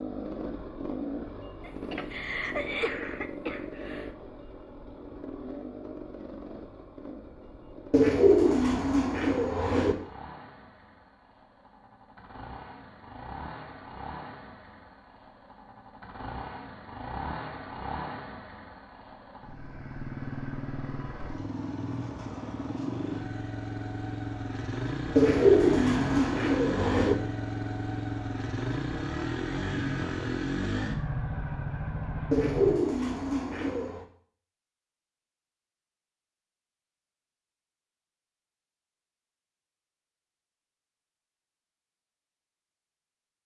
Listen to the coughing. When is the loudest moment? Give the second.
3 s.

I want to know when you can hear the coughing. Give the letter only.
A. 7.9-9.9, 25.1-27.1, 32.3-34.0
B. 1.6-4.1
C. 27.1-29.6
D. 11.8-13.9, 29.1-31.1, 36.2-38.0
B.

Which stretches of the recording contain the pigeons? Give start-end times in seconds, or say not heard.
7.9-9.9, 25.1-27.1, 32.3-34.0.